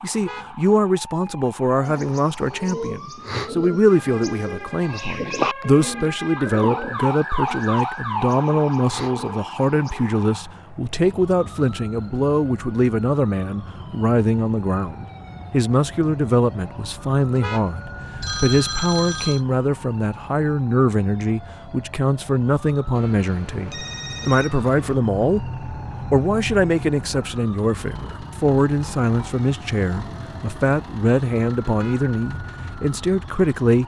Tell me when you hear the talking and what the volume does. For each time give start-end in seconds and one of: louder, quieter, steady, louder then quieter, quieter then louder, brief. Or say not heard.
0.0-33.8 steady.